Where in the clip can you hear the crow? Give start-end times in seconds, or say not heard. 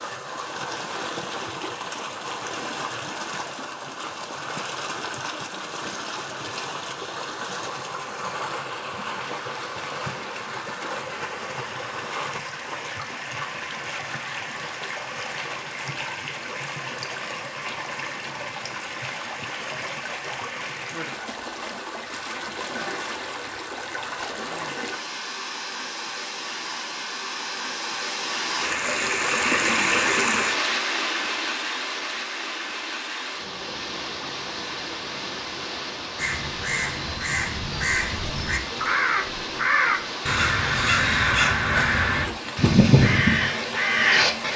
36.1-44.5.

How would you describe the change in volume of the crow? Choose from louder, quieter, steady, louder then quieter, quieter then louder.
louder.